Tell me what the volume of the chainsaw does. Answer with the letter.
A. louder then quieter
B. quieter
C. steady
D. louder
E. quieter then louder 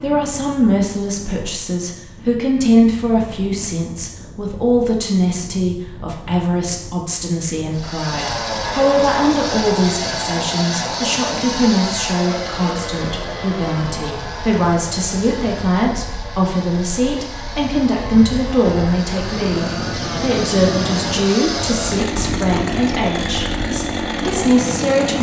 E.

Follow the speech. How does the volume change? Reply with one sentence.
The loudness of the speech stays about the same.